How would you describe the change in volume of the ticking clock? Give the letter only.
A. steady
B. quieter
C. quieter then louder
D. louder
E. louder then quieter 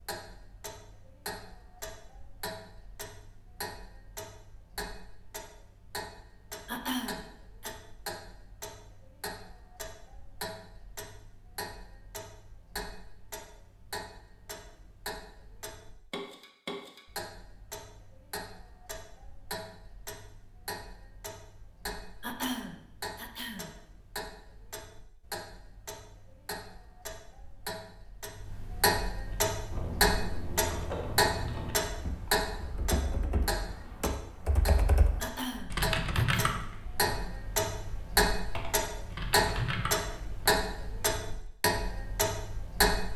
D.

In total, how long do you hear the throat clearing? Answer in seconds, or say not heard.
4 s.